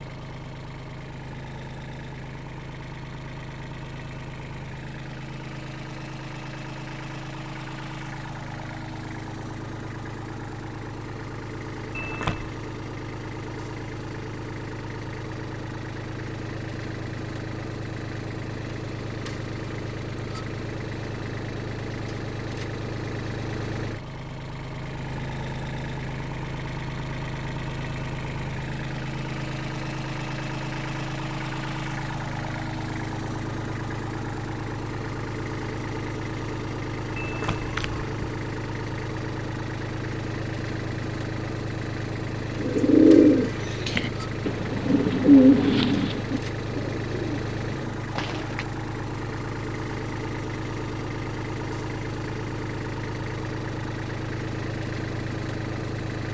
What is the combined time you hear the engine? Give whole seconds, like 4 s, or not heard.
56 s.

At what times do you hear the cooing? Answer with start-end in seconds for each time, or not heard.
42.6-48.6.